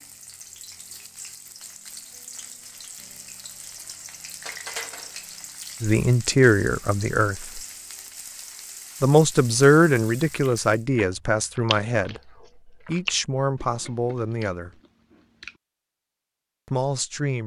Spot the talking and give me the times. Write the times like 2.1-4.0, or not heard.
5.8-7.6, 9.0-12.2, 12.8-14.7, 16.6-17.4.